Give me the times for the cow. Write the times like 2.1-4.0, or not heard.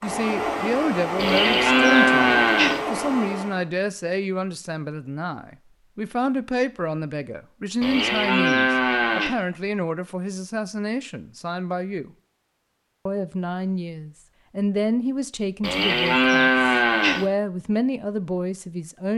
1.1-2.9, 7.8-9.3, 15.6-17.2.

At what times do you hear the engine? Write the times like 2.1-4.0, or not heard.
0.0-3.6.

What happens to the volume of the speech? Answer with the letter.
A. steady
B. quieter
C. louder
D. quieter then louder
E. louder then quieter
A.